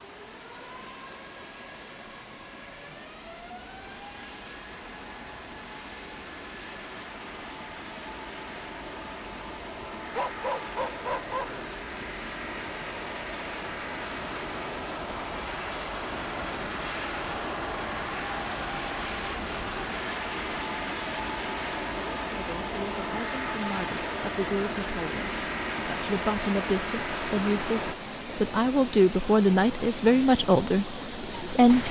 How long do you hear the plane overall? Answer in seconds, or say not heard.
28 s.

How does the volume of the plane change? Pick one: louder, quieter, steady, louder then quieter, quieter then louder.
louder.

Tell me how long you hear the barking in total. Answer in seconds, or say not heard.
2 s.